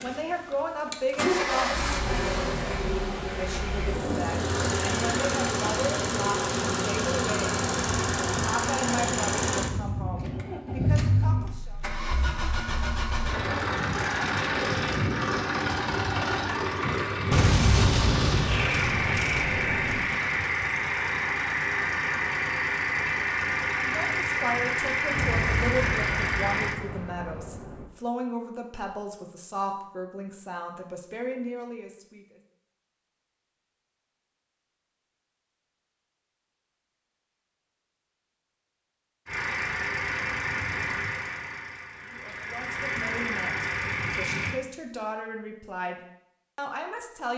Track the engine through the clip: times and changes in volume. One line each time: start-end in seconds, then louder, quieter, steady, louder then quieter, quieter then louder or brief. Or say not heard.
0.0-26.8 steady
39.2-44.6 quieter then louder.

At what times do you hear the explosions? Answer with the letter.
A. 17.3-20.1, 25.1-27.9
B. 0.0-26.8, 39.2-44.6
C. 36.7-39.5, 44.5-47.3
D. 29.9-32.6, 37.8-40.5
A.